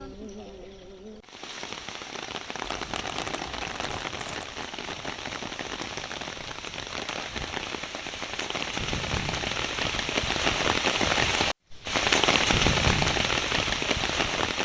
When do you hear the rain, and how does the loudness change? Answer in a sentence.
You can hear the rain from 0.0 to 14.6 s, getting louder.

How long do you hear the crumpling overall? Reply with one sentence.
You can hear the crumpling for 2 seconds altogether.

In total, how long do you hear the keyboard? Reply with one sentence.
The keyboard can't be heard in this clip.